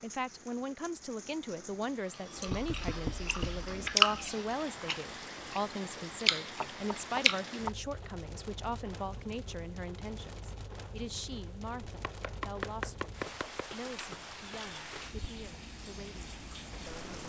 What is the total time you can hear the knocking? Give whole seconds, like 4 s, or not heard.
4 s.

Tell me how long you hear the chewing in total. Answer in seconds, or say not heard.
5 s.